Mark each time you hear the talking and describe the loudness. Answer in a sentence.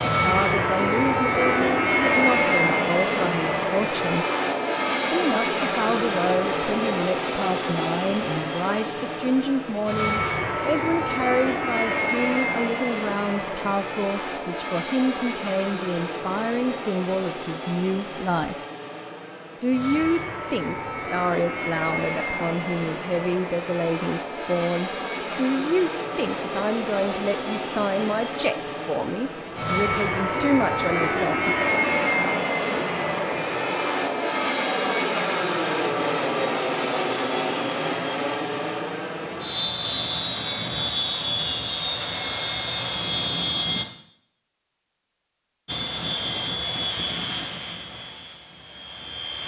You can hear the talking from 0.1 to 4.2 s, at a steady volume; from 5.0 to 18.6 s, at a steady volume; and from 19.6 to 31.6 s, at a steady volume.